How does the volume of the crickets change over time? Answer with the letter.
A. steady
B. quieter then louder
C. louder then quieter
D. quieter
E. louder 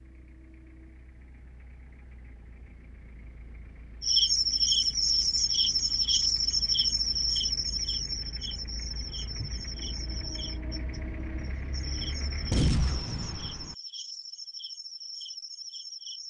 D.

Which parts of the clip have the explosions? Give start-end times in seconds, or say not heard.
12.5-13.8.